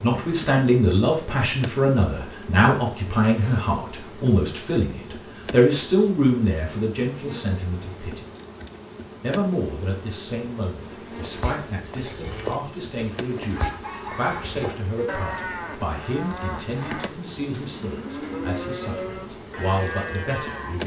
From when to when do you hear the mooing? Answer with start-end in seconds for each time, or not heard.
11.1-20.8.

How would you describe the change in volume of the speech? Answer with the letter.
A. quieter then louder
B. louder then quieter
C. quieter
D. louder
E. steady
C.